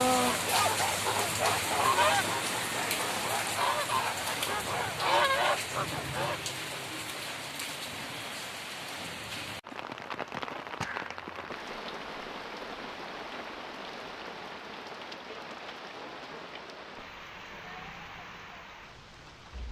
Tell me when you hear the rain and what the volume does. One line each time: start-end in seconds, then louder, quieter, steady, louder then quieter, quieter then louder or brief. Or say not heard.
0.0-19.6 quieter.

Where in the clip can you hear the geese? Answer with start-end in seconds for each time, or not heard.
0.1-6.3.